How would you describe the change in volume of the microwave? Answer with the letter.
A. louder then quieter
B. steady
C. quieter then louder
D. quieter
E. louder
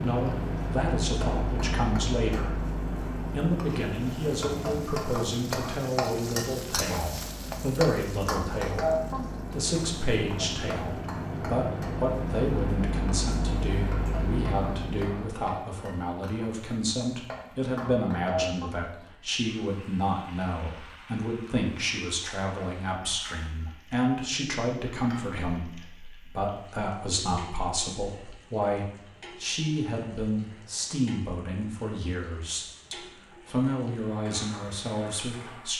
C.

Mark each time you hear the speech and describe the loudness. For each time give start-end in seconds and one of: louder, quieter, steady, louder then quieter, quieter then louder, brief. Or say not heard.
0.0-2.6 brief
3.3-35.7 steady.